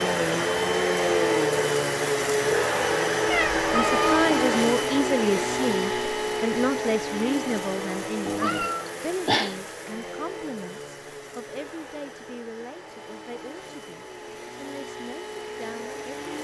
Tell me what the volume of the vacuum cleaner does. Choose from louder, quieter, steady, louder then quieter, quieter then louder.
quieter.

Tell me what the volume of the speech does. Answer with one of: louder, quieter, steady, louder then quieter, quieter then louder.
quieter.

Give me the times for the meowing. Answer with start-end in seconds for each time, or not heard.
3.2-4.2, 8.2-9.9.